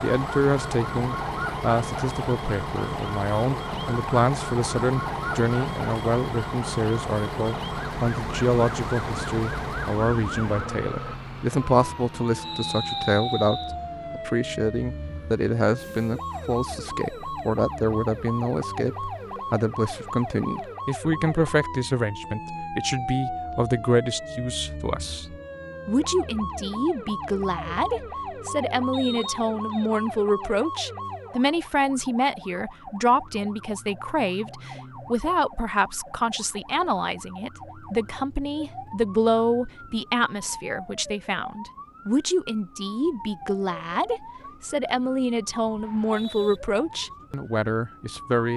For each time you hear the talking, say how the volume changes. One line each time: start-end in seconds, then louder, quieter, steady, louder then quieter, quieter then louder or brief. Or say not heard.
0.0-48.5 steady.